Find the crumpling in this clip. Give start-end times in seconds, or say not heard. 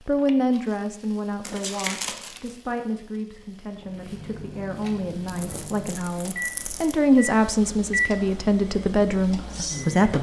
1.4-2.5, 5.2-7.0.